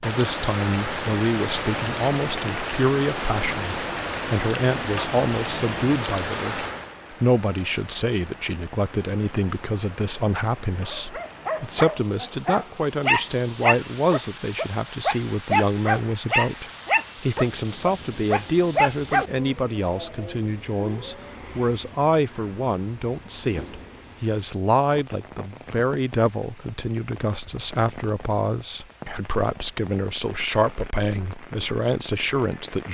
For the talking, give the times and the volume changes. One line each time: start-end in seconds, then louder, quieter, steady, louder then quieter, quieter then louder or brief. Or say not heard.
0.0-32.9 steady.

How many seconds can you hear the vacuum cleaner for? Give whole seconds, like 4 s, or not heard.
not heard.